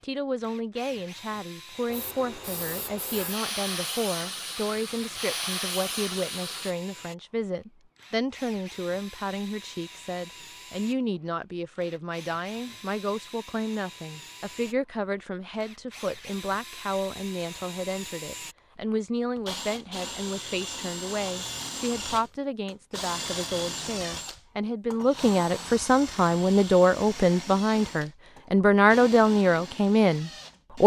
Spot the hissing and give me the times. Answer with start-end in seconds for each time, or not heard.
1.9-6.8.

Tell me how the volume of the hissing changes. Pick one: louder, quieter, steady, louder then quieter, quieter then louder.
louder.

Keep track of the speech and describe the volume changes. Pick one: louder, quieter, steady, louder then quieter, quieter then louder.
louder.